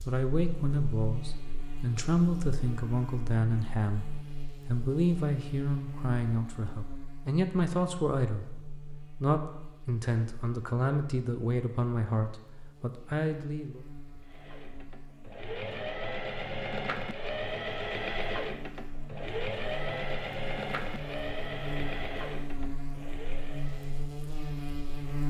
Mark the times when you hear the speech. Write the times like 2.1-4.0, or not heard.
0.0-13.8.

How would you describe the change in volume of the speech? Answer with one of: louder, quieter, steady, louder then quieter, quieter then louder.
steady.